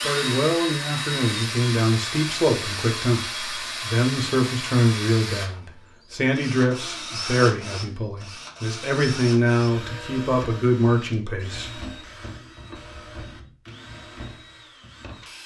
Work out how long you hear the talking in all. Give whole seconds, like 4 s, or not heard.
12 s.